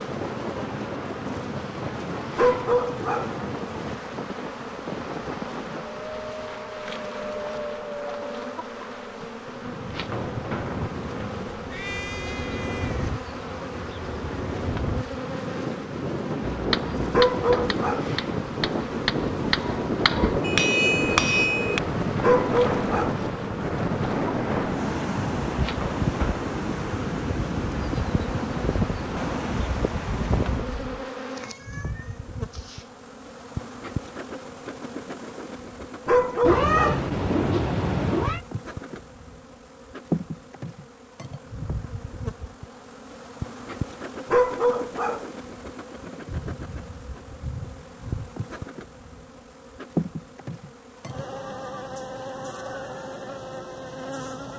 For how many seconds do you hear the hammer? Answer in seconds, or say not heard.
5 s.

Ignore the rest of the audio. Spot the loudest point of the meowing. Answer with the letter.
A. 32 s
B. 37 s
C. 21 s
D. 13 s
B.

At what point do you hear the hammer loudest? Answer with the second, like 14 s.
21 s.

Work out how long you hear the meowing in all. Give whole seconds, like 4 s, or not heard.
5 s.